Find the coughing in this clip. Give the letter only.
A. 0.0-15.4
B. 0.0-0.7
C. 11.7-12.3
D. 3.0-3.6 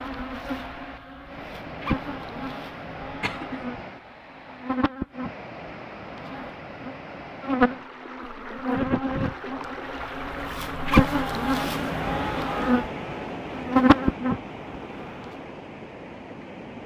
D.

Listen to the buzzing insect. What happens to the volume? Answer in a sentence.
The loudness of the buzzing insect goes up.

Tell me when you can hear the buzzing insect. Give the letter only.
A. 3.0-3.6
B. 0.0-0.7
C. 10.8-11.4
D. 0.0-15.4
D.